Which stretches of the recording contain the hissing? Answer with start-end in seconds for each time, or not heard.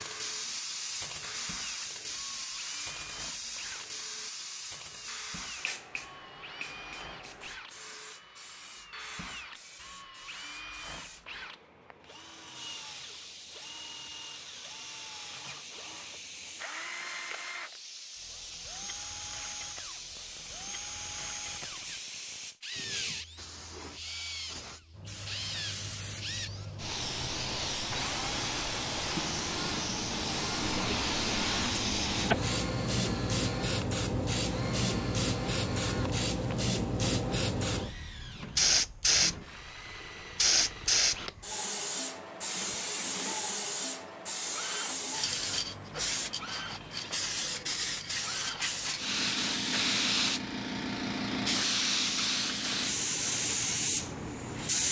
0.0-54.8.